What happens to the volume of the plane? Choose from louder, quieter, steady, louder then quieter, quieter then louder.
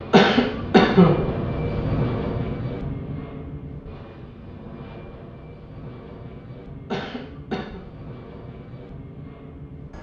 quieter.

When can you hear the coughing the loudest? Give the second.
1 s.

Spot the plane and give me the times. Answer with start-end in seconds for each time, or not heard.
0.0-9.9.